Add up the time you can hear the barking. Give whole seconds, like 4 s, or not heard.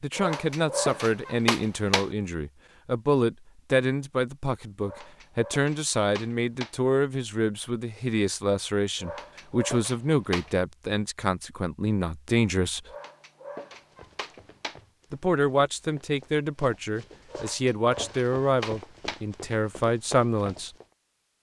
9 s.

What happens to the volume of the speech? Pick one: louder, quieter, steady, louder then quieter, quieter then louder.
steady.